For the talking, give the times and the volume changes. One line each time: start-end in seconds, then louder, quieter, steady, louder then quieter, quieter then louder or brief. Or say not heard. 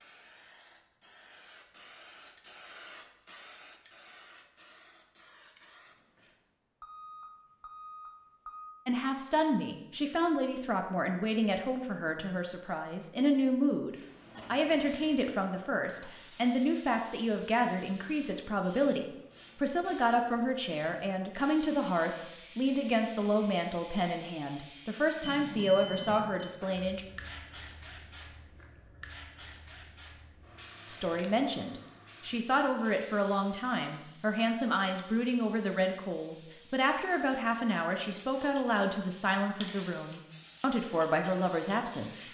8.8-27.1 steady
30.9-42.2 steady.